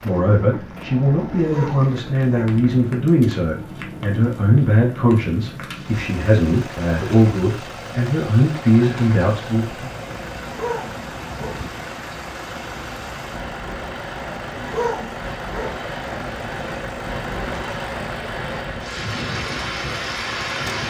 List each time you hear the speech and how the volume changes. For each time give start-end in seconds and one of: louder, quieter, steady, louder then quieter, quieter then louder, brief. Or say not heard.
0.0-9.9 steady.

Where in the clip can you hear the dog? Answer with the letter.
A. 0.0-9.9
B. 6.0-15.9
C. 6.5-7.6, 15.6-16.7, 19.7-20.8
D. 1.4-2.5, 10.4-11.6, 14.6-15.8
D.